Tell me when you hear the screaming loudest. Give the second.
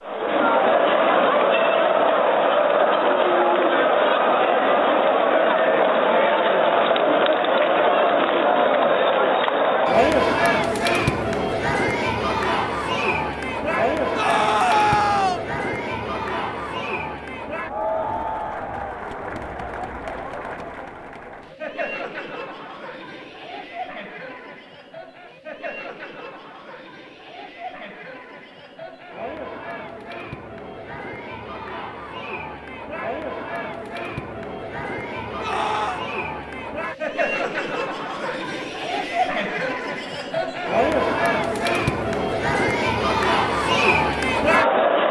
15 s.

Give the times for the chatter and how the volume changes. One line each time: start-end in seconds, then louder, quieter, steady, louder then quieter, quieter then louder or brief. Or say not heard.
0.0-45.0 quieter then louder.